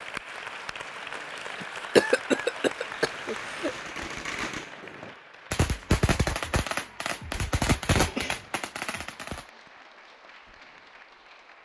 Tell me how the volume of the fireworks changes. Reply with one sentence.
The volume of the fireworks goes up.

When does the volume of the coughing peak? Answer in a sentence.
The volume of the coughing peaks at 2 seconds.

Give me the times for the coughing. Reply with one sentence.
You can hear the coughing from 1.6 to 3.7 s and from 8.0 to 8.5 s.